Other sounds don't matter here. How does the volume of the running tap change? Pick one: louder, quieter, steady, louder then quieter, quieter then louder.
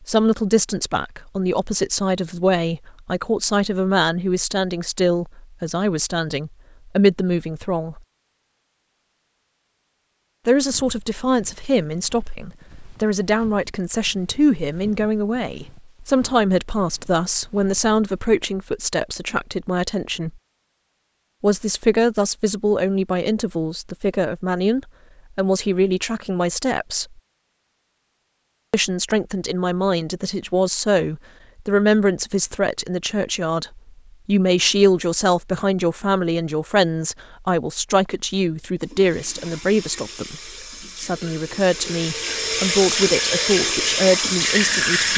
louder.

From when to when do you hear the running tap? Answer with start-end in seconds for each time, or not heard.
38.8-45.1.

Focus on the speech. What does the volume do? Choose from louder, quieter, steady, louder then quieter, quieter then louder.
steady.